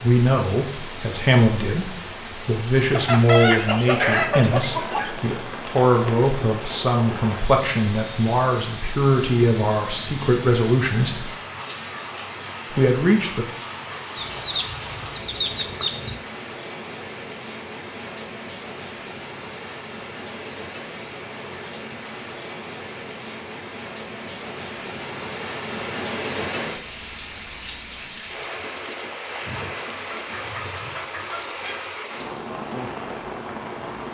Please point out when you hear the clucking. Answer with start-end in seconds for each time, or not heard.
3.0-5.1, 14.2-16.2, 29.9-31.9.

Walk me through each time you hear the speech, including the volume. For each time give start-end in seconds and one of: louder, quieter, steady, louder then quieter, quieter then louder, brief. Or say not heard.
0.0-11.3 steady
12.7-13.4 brief.